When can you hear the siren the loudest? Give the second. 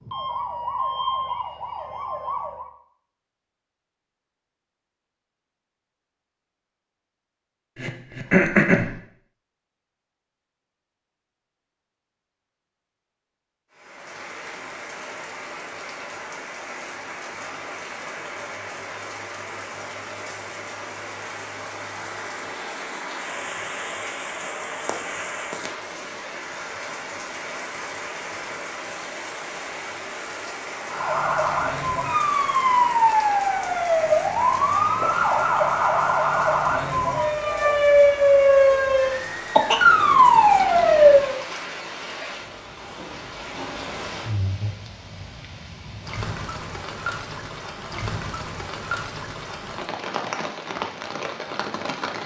41 s.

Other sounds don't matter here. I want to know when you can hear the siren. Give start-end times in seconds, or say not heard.
0.0-2.7, 30.9-41.4.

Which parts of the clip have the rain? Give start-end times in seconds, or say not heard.
13.7-52.2.